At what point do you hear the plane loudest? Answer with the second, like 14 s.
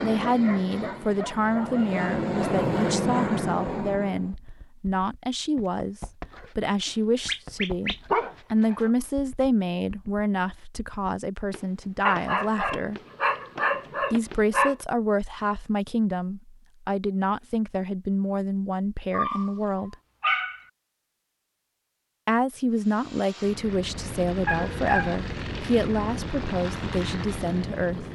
3 s.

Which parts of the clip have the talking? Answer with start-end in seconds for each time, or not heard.
0.0-6.0, 6.5-13.0, 14.1-19.9, 22.2-28.0.